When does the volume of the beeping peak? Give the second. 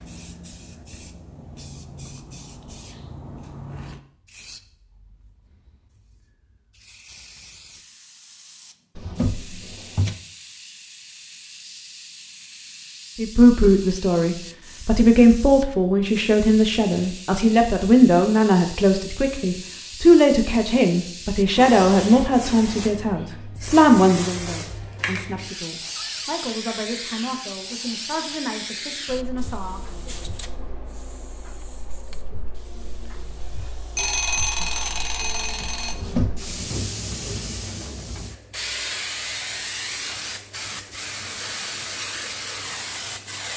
34 s.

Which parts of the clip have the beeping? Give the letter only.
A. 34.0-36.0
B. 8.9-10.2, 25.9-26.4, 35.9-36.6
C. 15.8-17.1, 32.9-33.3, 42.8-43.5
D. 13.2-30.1
A.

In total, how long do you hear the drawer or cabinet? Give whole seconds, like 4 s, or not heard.
2 s.